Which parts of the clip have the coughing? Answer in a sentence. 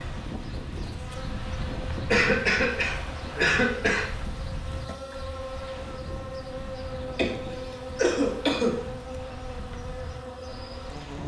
You can hear the coughing from 2.1 to 4.0 s and from 7.2 to 8.8 s.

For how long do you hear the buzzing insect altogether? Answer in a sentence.
You can hear the buzzing insect for 11 seconds altogether.